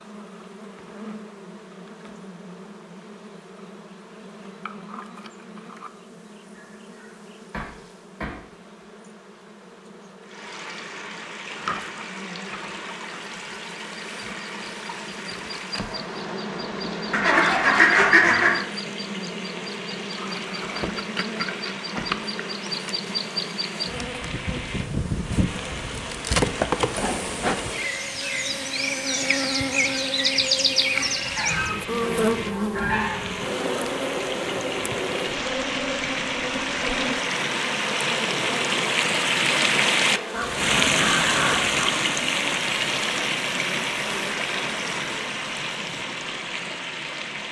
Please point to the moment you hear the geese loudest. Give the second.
18 s.